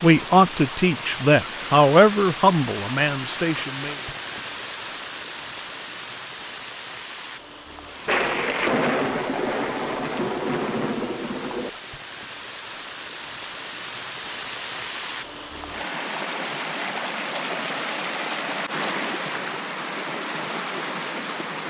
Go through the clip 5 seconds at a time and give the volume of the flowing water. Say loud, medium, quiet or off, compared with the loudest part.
loud, medium, medium, loud, loud.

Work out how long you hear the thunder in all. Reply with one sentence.
You can hear the thunder for 4 seconds altogether.